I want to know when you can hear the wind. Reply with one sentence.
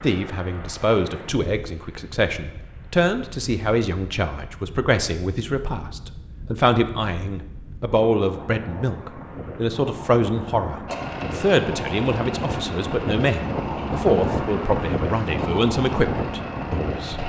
The wind can be heard from 0.0 to 17.2 s.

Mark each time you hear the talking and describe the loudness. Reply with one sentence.
You can hear the talking from 0.0 to 17.2 s, at a steady volume.